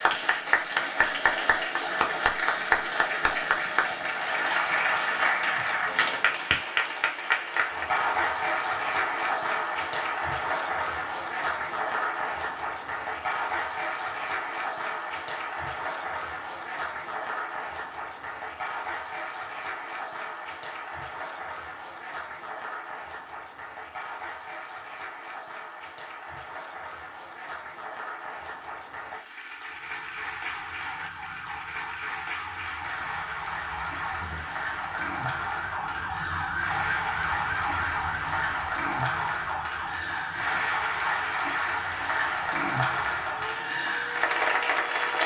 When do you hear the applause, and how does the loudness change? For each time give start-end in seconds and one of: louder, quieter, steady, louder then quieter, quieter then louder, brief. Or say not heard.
0.0-45.2 quieter then louder.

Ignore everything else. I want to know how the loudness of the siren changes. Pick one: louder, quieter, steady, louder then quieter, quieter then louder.
louder then quieter.